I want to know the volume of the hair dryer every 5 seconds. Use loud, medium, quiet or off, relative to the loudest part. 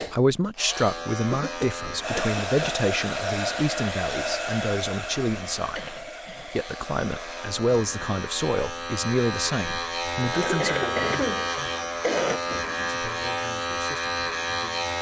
loud, medium, off.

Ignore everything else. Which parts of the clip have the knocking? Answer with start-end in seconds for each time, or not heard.
not heard.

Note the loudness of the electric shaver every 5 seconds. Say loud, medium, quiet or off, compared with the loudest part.
medium, medium, loud.